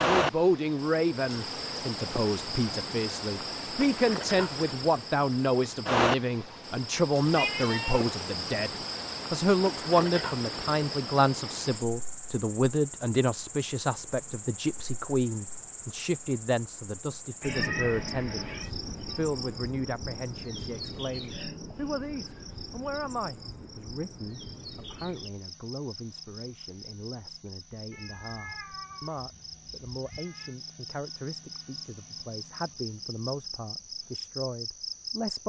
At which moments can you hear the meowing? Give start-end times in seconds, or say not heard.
7.3-8.2, 17.4-18.7, 27.9-30.6.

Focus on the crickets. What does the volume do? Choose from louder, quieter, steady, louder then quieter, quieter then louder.
quieter.